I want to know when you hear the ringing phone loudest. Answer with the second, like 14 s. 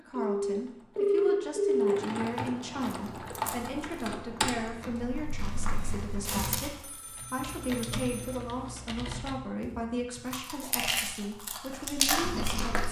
1 s.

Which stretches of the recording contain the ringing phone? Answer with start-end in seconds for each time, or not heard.
0.1-2.0, 6.8-8.3.